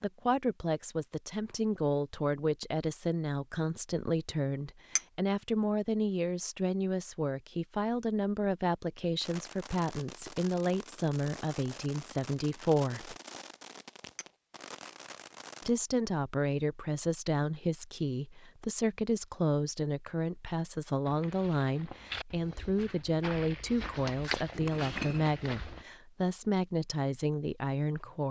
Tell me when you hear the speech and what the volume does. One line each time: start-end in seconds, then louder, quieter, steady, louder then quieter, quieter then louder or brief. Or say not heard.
0.0-13.2 steady
15.7-28.2 steady.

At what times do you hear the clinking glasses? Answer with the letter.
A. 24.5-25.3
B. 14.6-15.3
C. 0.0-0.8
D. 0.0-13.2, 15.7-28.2
A.